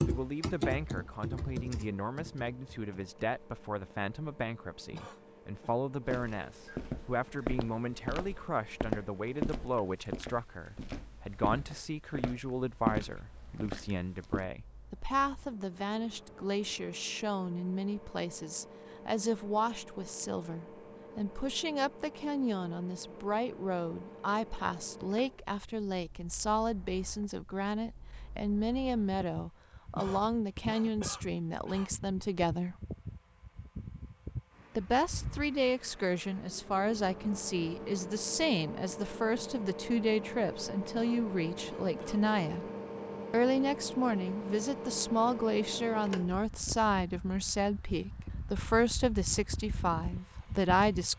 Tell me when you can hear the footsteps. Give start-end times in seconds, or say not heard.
6.0-14.4.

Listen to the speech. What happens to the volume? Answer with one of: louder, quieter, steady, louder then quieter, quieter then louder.
louder.